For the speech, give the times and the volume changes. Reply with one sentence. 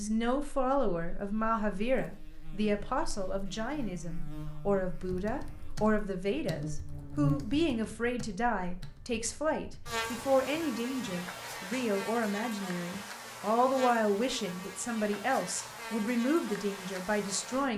The speech can be heard from 0.0 to 17.7 s, at a steady volume.